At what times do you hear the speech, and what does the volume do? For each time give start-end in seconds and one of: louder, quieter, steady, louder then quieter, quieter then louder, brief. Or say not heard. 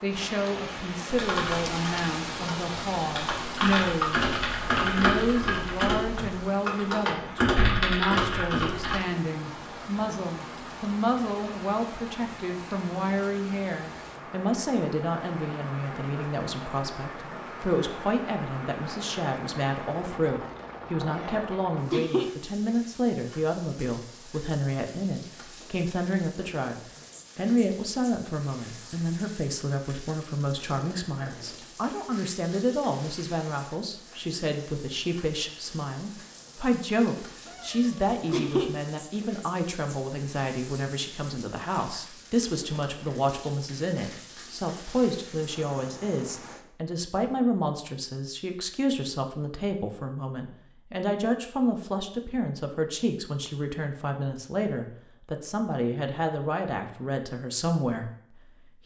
0.0-26.8 steady
27.4-58.8 steady.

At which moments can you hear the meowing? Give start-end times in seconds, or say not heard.
21.1-22.3, 37.5-38.7.